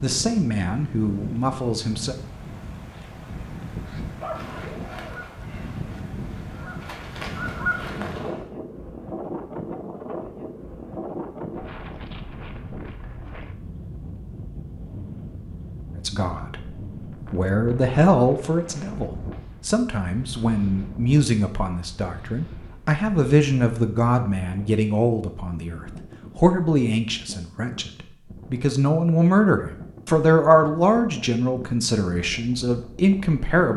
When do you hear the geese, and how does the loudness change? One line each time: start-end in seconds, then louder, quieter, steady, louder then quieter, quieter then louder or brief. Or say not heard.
4.3-8.5 quieter then louder.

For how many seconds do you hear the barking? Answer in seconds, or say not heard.
2 s.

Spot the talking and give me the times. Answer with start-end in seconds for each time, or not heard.
0.0-2.1, 15.9-33.7.